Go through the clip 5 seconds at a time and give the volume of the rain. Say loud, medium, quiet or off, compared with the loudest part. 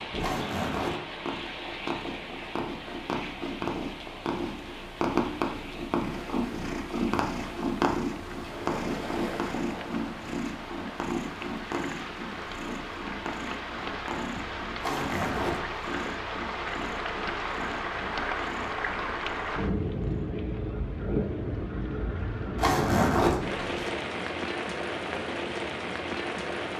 medium, quiet, medium, loud, loud, loud.